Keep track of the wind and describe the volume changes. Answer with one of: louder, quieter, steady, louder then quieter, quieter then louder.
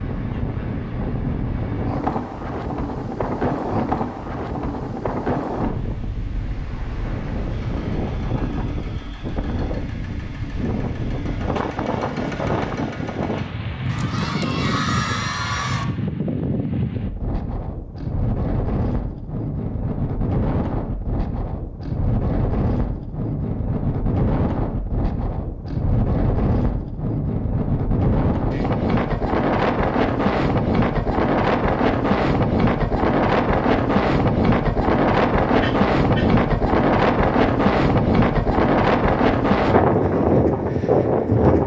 louder.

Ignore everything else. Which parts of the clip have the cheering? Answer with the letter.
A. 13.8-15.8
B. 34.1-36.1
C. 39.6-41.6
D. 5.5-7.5
A.